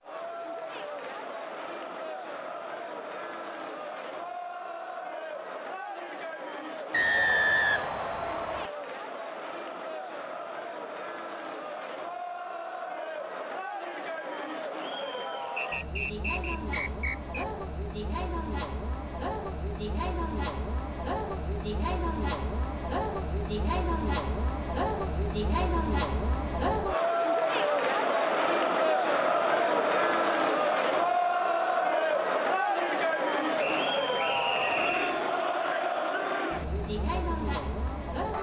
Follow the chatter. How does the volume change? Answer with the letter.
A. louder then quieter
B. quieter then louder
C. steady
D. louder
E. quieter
D.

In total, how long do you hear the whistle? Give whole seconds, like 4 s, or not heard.
5 s.